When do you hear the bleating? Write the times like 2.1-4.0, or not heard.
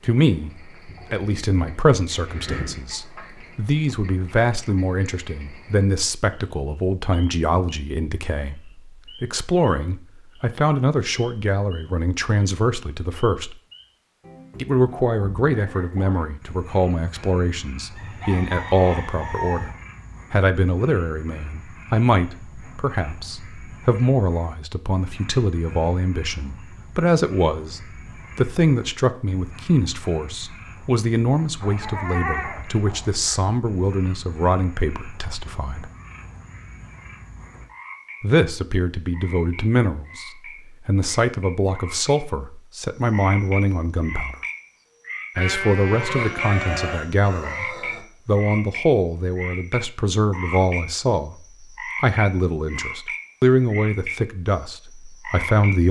0.8-2.8, 31.6-33.5, 45.4-47.0.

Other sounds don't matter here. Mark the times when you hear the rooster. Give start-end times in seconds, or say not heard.
17.9-19.7, 46.0-48.0.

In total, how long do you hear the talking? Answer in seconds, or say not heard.
50 s.